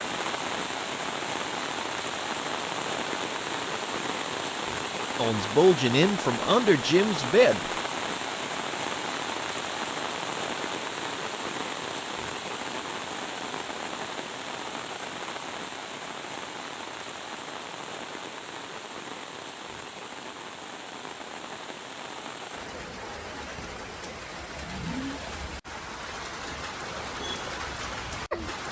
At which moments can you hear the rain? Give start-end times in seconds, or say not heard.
0.0-28.6.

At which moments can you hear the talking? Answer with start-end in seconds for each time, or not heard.
5.2-7.6.